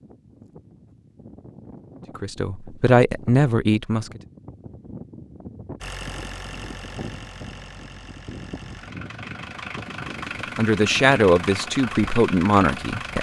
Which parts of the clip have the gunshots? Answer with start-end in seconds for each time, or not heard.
not heard.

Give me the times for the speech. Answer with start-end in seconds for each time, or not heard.
2.1-4.2, 10.6-13.1.